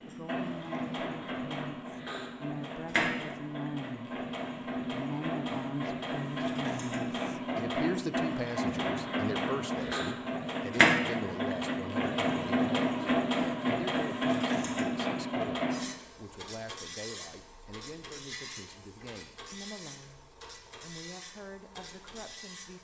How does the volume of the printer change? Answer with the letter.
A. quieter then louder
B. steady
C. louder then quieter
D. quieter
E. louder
C.